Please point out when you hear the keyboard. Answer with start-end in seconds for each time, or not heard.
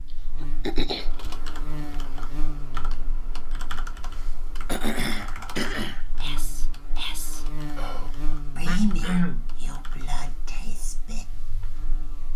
0.9-10.4.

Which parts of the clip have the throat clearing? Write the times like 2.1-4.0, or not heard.
0.4-1.1, 4.7-6.0, 8.7-9.5.